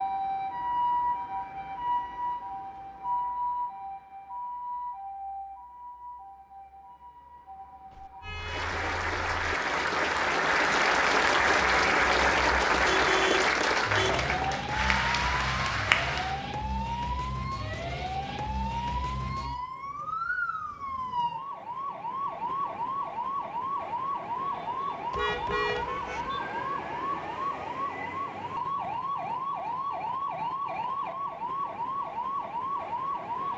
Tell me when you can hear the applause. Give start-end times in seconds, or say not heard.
8.3-16.4.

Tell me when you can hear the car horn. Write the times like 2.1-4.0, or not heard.
7.9-9.5, 12.8-14.2, 25.1-26.3.